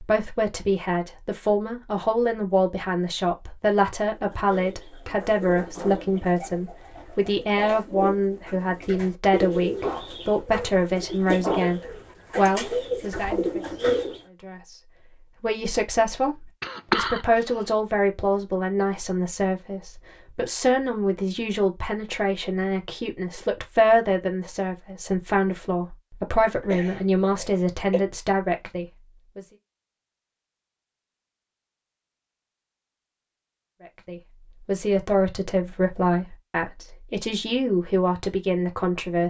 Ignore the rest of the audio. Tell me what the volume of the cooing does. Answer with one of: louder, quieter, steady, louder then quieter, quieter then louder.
louder.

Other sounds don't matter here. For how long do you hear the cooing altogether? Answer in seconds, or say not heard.
10 s.